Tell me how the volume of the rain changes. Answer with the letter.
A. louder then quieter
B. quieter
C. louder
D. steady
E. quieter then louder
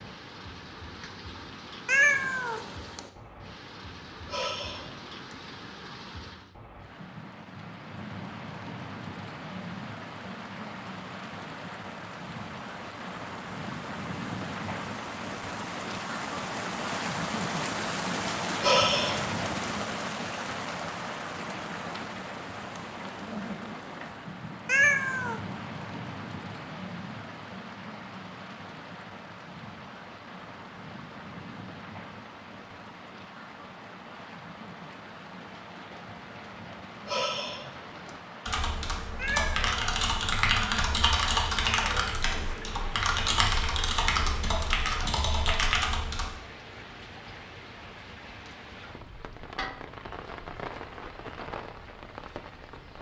A.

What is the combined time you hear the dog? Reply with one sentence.
You can't hear the dog here.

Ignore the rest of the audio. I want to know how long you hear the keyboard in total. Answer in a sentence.
You can hear the keyboard for 8 seconds altogether.